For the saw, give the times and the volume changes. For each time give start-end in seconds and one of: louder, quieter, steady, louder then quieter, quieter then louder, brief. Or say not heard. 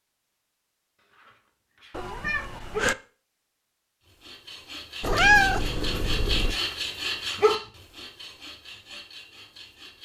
4.0-9.9 louder then quieter.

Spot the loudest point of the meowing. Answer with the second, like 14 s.
5 s.